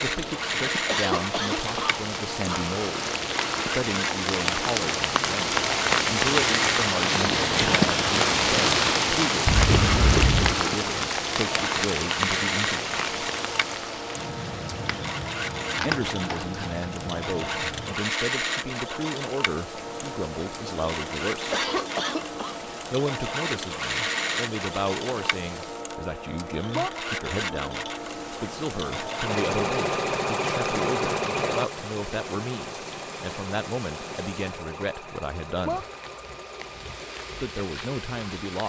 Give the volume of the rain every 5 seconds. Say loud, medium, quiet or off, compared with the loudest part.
medium, loud, medium, quiet, quiet, quiet, quiet, quiet.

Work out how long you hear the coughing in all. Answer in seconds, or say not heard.
3 s.